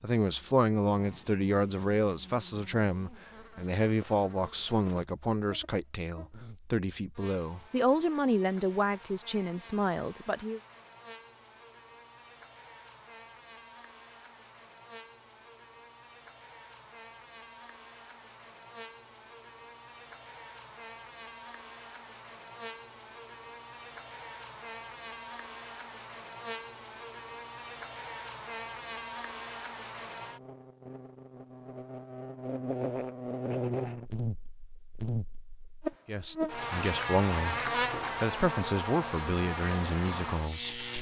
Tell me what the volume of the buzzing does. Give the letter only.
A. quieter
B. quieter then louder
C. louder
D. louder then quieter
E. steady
C.